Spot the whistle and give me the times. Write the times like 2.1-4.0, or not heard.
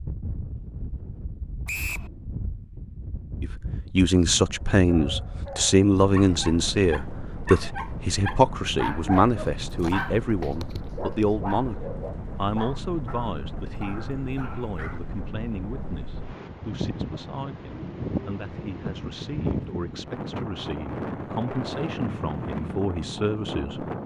1.6-2.1.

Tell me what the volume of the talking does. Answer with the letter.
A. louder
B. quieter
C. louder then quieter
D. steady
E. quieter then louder
E.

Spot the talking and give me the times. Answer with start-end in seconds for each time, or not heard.
3.4-23.9.